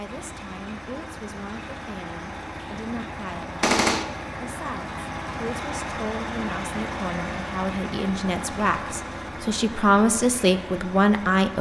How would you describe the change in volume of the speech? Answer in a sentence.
The loudness of the speech goes up.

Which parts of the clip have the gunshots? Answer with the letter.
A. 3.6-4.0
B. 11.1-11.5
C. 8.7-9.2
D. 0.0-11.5
A.